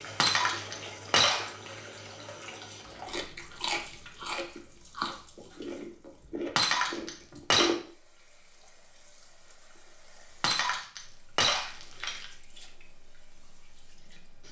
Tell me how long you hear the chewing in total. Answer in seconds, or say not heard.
5 s.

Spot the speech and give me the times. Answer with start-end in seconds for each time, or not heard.
not heard.